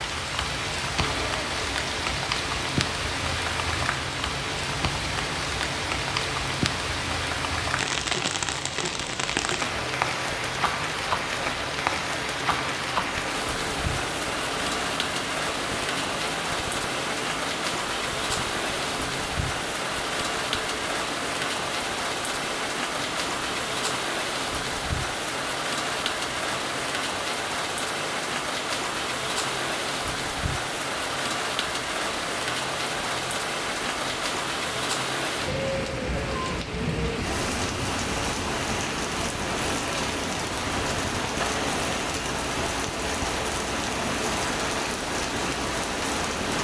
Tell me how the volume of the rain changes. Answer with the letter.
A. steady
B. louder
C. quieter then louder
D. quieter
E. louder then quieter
A.